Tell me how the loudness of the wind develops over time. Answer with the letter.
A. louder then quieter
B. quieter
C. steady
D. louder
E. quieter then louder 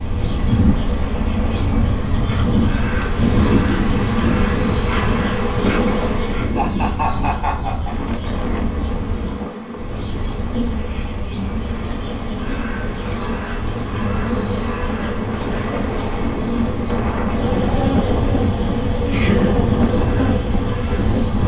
E.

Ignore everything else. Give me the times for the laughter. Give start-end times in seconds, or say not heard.
6.5-8.0, 19.1-19.6.